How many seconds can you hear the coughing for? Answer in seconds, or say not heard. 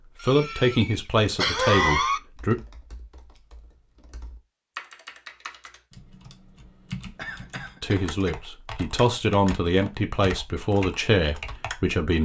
3 s.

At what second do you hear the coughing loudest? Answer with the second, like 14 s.
2 s.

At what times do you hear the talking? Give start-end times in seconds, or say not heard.
0.2-2.5, 7.8-12.1.